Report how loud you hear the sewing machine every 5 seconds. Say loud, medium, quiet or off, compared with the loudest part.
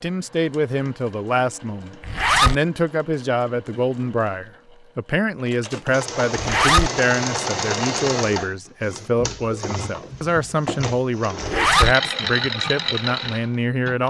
quiet, loud, loud.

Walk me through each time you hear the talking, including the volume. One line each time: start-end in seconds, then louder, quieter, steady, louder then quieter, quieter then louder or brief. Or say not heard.
0.0-14.0 steady.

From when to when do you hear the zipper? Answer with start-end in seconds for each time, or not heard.
2.0-2.6, 6.3-6.9, 11.4-11.9.